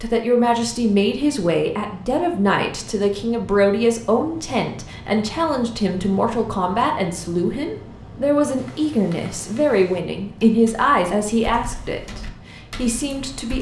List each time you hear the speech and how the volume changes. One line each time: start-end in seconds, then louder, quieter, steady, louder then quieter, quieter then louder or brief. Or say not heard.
0.0-13.5 steady.